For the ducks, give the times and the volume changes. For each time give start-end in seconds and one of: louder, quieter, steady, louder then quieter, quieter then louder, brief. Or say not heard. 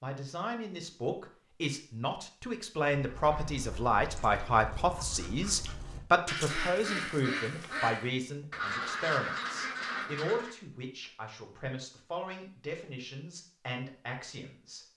2.9-10.6 louder.